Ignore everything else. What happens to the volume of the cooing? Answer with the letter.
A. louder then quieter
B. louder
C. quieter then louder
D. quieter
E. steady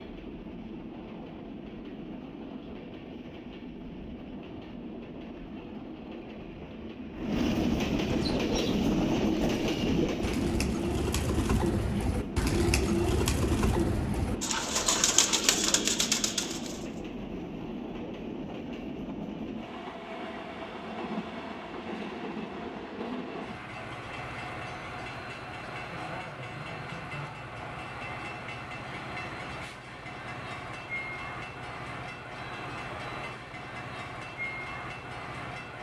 B.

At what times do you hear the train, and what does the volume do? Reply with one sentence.
The train can be heard from 0.0 to 35.7 s, getting louder then quieter.